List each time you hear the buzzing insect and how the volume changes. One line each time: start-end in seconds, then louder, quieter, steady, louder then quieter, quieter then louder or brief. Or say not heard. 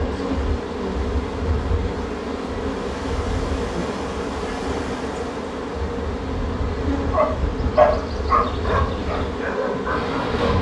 0.0-10.5 steady.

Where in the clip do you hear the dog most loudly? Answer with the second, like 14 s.
8 s.